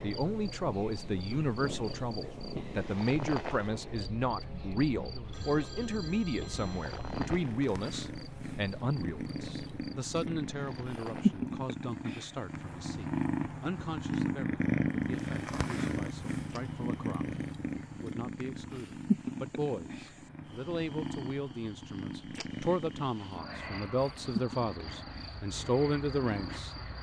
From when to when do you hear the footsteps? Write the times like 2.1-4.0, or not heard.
not heard.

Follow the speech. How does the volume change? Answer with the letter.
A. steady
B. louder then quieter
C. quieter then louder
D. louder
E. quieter
C.